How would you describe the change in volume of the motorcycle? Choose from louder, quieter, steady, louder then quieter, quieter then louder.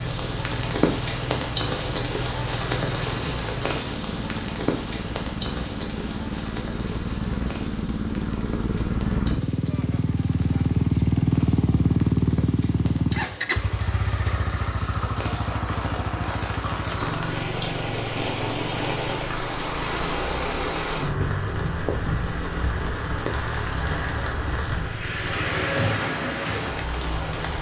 louder then quieter.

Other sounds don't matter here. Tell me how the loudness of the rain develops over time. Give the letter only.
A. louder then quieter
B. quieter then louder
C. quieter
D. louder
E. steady
B.